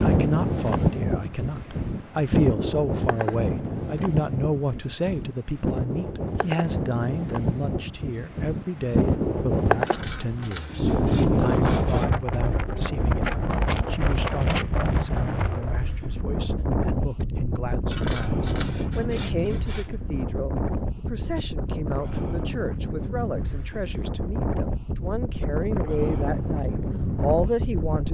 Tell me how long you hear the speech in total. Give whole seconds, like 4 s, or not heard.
28 s.